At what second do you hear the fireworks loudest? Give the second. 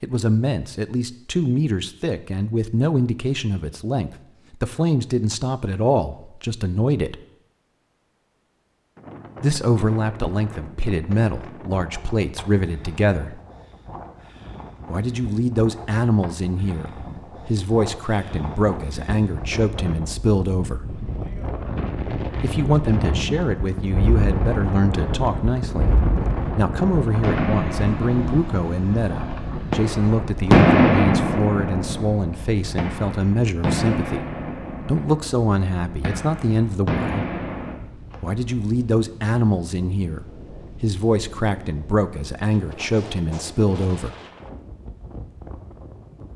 31 s.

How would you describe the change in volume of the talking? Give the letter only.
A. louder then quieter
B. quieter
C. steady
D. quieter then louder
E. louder
C.